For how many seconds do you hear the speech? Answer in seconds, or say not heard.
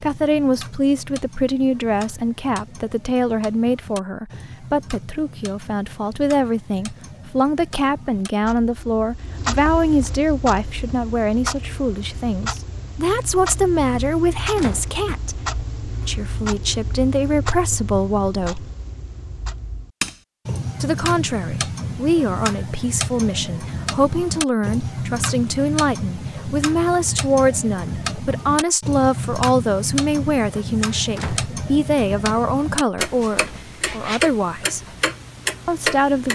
33 s.